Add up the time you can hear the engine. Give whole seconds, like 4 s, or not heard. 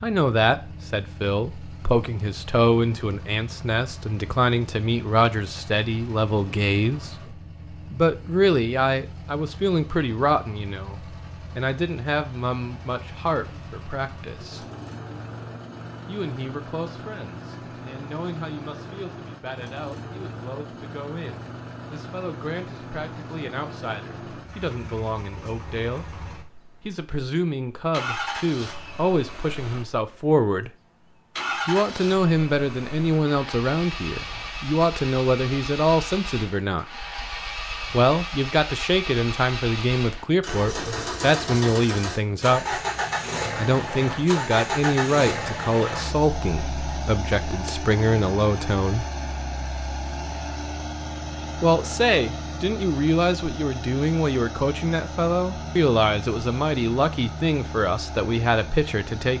59 s.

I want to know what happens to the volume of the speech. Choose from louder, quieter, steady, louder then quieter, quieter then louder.
quieter then louder.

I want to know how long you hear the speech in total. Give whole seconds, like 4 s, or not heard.
53 s.